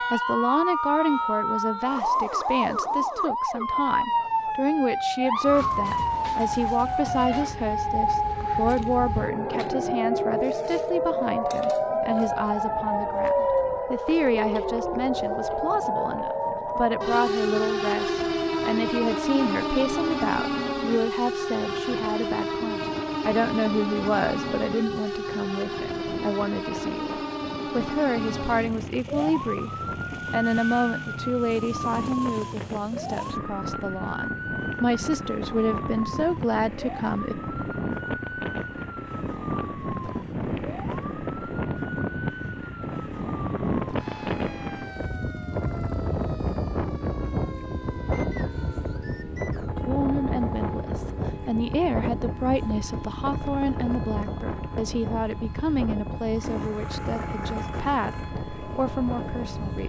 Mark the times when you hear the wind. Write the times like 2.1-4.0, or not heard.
12.4-59.8.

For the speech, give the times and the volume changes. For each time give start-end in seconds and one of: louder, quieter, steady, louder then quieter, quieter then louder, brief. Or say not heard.
0.1-29.7 steady
30.3-37.4 quieter then louder
49.9-59.8 steady.